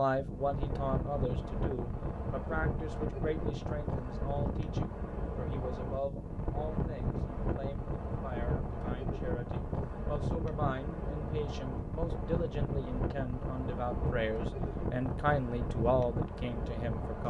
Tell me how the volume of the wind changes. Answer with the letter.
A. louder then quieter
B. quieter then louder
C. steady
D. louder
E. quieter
C.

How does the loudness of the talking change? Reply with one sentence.
The volume of the talking goes down, then up.